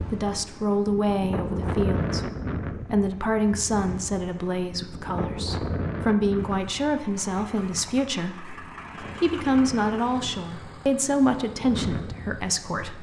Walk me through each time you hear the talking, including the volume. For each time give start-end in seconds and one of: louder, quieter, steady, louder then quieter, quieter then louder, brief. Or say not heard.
0.1-12.9 steady.